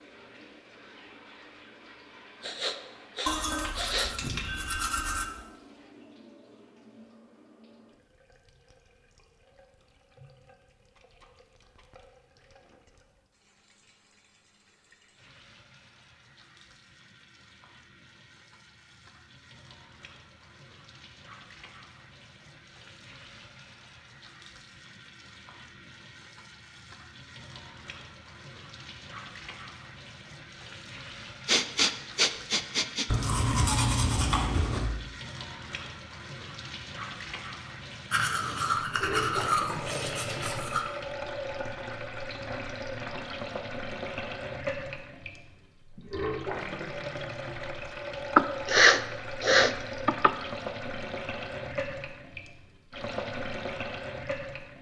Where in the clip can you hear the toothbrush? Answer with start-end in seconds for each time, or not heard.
3.2-5.2, 33.0-34.9, 38.1-40.9.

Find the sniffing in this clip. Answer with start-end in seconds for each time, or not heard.
2.4-4.6, 31.4-33.0, 48.4-50.3.